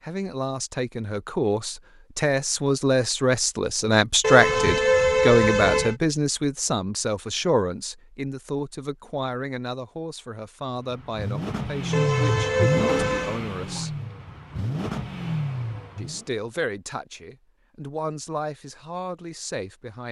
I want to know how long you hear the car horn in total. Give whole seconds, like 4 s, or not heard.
3 s.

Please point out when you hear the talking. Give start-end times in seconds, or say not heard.
0.0-14.0, 15.9-20.0.